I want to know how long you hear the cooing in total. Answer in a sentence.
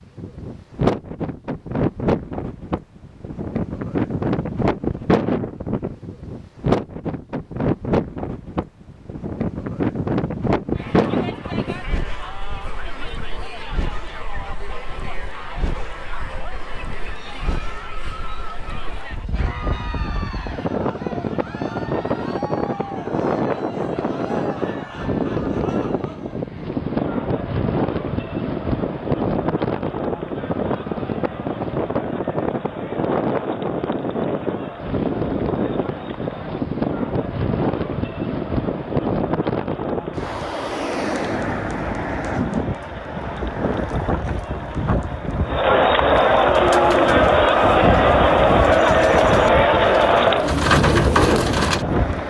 You can hear the cooing for 5 seconds altogether.